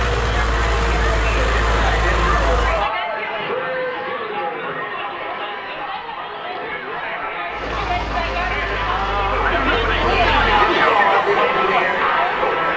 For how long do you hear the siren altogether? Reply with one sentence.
You can't hear the siren here.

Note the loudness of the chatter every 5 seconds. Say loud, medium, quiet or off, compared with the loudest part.
medium, medium, loud.